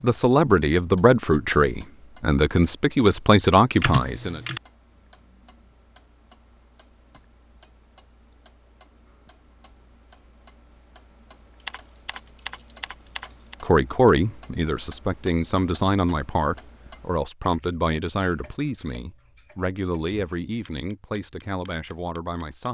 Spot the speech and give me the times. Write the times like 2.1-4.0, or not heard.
0.0-4.4, 13.6-22.7.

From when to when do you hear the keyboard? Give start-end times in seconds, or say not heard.
3.8-4.6, 11.6-13.6.